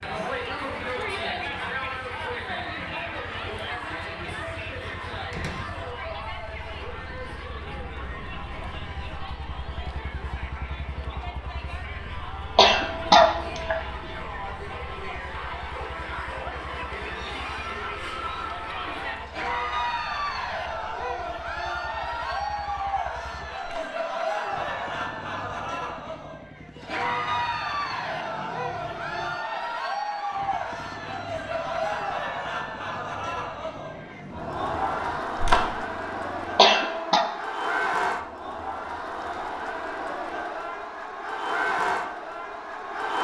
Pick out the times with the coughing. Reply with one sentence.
The coughing can be heard from 12.6 to 13.8 s and from 36.5 to 37.2 s.